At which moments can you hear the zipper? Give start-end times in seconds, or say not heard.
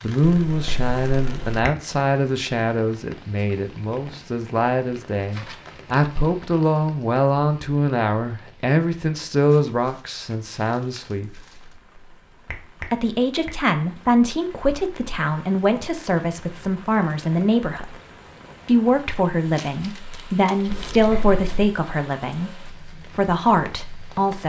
not heard.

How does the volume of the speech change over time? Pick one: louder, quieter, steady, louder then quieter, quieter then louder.
steady.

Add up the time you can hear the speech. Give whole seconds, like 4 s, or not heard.
22 s.